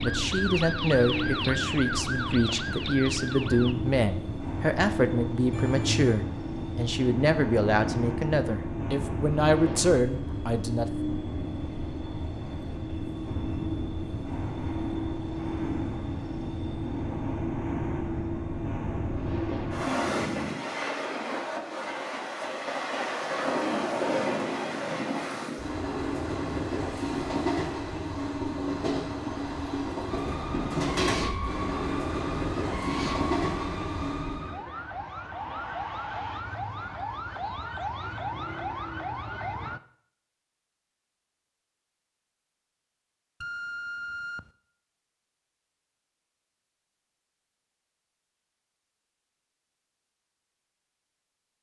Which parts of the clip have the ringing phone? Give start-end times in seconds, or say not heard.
5.5-6.2, 43.4-44.5.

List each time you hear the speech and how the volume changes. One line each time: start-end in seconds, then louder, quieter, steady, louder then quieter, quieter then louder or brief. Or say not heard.
0.0-10.8 steady.